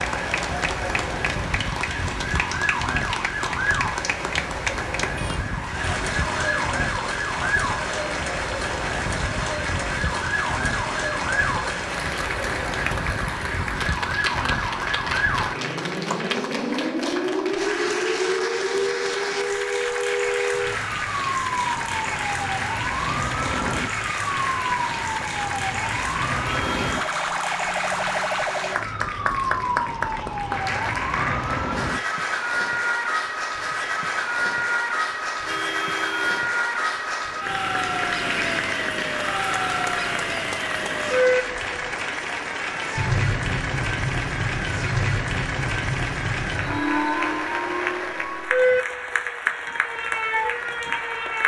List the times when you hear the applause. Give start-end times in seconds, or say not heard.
0.0-51.4.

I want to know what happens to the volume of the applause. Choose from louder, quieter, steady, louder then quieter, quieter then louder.
steady.